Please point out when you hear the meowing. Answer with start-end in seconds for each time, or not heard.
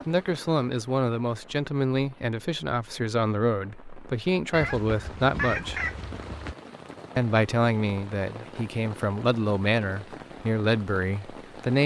4.5-6.5.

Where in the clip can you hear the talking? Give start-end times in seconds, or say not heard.
0.1-5.8, 7.2-11.8.